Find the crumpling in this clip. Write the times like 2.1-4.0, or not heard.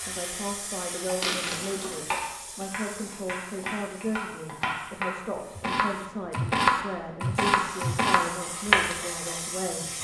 1.2-2.0.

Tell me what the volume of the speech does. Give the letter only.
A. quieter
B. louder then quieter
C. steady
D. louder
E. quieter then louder
C.